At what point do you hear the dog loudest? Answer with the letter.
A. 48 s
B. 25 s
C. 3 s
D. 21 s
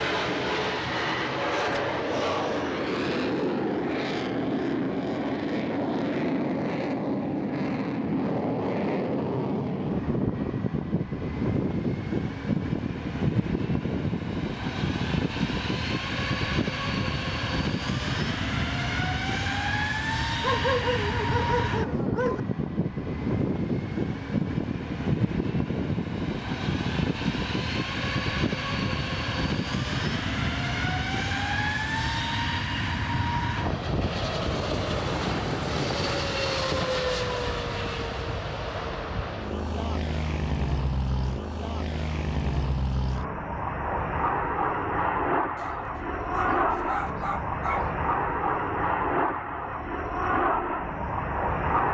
D.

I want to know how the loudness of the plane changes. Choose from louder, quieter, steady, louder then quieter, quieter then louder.
steady.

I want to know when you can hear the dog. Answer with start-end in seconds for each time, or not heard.
1.6-2.8, 20.4-22.4, 45.5-48.0.